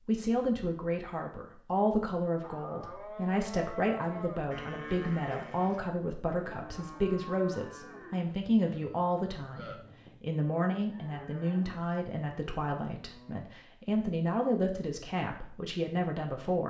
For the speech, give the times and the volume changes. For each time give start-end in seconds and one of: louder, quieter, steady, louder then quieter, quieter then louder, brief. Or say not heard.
0.0-16.6 steady.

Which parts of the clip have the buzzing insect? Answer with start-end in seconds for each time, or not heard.
not heard.